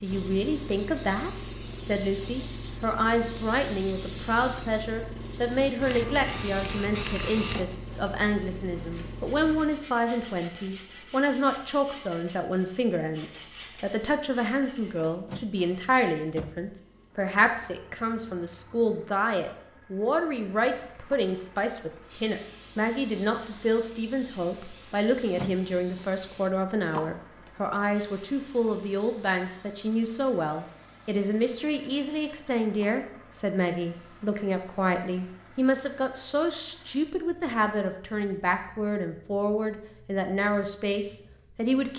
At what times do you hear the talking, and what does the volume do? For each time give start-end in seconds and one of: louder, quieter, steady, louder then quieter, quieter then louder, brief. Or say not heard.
0.0-41.9 steady.